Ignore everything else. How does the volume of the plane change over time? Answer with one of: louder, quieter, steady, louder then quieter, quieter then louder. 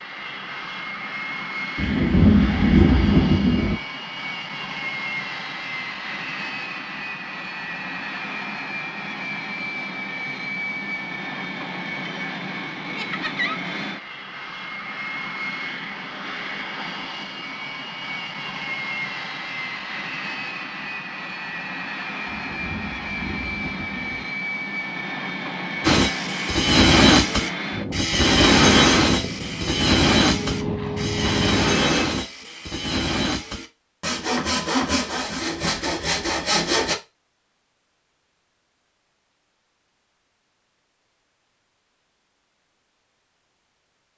steady.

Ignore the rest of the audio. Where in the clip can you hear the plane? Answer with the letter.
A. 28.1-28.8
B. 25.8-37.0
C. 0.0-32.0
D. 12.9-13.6
C.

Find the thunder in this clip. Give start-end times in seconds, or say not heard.
1.8-3.8, 22.2-24.2.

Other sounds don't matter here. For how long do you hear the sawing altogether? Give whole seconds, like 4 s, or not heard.
11 s.